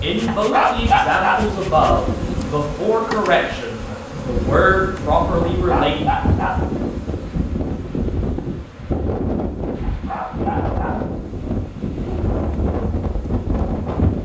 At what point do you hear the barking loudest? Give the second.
1 s.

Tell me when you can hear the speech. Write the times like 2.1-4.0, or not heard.
0.0-6.0.